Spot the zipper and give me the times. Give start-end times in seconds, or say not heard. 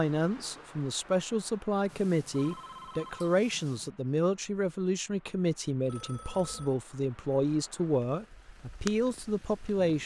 not heard.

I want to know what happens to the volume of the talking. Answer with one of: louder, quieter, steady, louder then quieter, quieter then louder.
steady.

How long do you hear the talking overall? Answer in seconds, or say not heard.
10 s.